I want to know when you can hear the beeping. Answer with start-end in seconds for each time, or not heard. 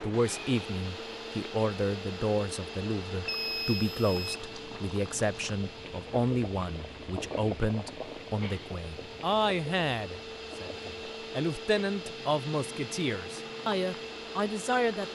3.2-4.5.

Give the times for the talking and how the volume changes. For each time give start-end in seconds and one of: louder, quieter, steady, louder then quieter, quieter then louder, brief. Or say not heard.
0.0-15.0 steady.